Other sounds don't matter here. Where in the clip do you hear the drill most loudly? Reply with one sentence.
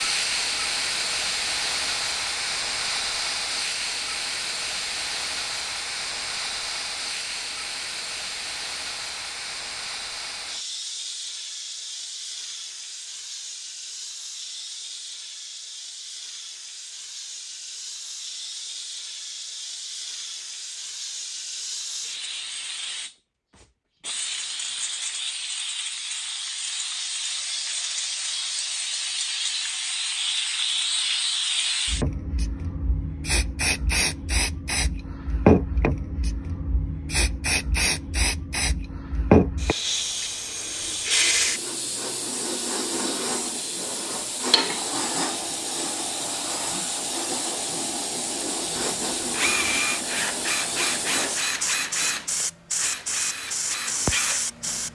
The volume of the drill peaks at 50 seconds.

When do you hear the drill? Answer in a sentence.
The drill can be heard from 48.6 to 54.9 s.